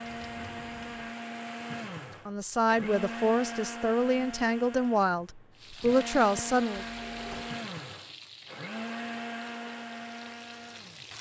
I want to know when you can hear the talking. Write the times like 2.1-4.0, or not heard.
2.2-6.8.